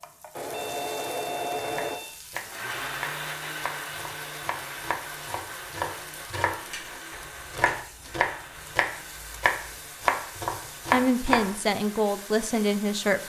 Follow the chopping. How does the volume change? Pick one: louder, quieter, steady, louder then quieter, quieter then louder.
louder.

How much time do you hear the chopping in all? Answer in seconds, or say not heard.
10 s.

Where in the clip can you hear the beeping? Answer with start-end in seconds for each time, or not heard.
0.6-2.2.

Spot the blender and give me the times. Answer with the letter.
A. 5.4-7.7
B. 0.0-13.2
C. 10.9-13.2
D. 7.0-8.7
B.